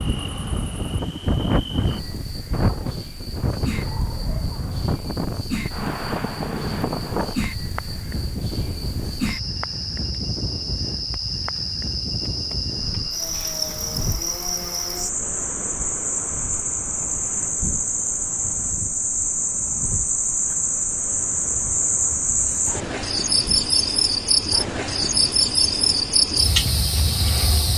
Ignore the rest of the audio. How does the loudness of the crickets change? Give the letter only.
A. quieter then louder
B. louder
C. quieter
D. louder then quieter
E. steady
B.